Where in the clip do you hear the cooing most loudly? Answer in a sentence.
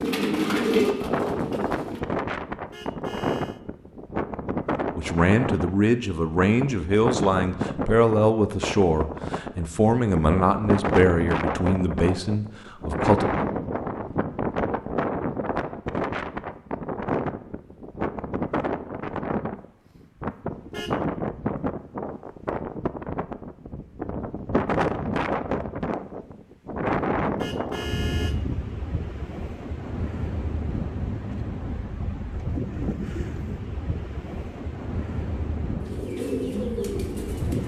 The volume of the cooing peaks at 1 second.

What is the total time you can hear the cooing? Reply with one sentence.
The cooing can be heard for 4 seconds in total.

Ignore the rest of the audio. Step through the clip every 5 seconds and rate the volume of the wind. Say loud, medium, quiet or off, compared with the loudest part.
loud, loud, loud, loud, loud, loud, medium, medium.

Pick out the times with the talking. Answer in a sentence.
The talking can be heard from 5.0 to 13.3 s.